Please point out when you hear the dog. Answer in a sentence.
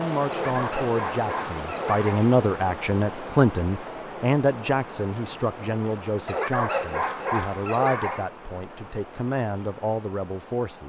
The dog can be heard from 0.3 to 2.3 s and from 6.2 to 8.3 s.